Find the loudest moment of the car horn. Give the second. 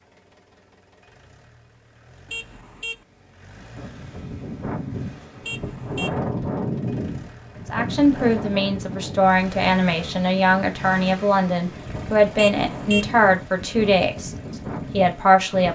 13 s.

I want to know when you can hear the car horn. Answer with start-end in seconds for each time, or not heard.
2.2-3.0, 5.4-6.2, 12.3-13.1.